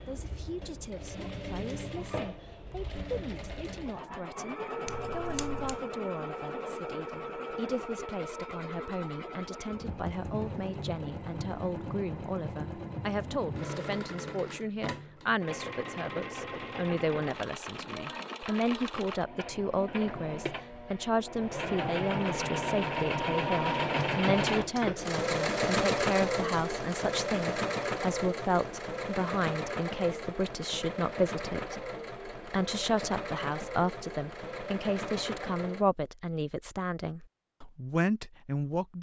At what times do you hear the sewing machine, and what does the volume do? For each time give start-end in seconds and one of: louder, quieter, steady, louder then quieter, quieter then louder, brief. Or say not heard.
0.0-35.9 louder then quieter.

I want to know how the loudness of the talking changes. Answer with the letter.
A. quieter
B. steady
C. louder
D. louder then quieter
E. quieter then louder
C.